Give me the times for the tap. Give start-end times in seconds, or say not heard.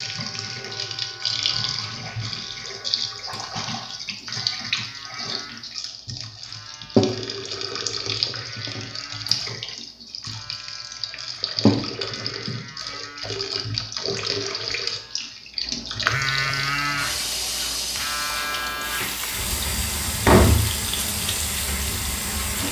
0.0-22.6.